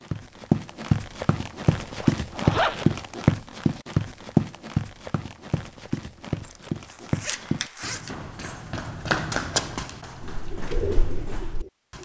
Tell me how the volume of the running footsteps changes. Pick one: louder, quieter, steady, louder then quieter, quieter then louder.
quieter.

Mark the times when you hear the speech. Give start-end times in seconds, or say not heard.
not heard.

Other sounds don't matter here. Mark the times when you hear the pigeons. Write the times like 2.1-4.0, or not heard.
10.4-12.0.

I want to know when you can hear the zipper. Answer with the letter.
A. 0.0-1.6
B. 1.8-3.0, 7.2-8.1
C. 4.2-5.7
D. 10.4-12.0
B.